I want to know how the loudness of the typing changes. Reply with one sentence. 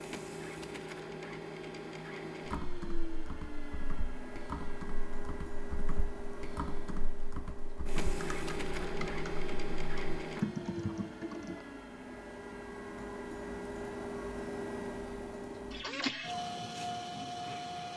The loudness of the typing goes up.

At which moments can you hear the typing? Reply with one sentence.
The typing can be heard from 2.5 to 11.6 s.